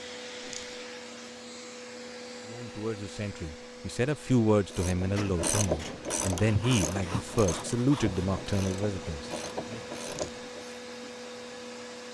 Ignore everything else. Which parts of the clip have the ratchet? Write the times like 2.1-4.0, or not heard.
4.7-10.8.